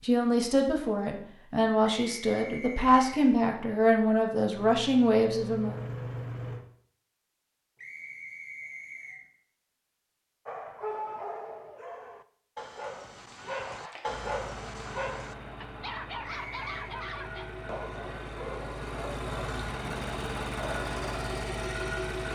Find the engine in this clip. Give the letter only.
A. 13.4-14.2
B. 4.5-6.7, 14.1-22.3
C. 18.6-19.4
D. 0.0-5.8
B.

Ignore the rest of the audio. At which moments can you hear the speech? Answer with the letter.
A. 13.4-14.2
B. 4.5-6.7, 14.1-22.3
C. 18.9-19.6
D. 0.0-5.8
D.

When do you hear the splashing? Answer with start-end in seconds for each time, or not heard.
13.4-14.2.